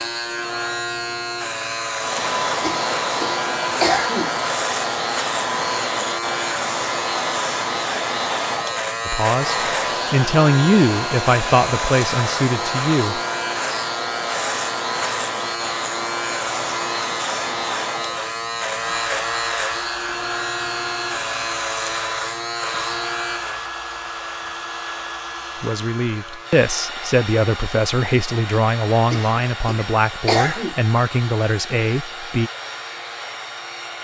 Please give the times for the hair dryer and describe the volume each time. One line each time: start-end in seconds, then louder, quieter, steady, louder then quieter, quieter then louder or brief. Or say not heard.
1.9-33.9 quieter.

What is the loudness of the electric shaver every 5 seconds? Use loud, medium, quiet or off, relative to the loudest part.
loud, loud, loud, loud, loud, quiet, quiet.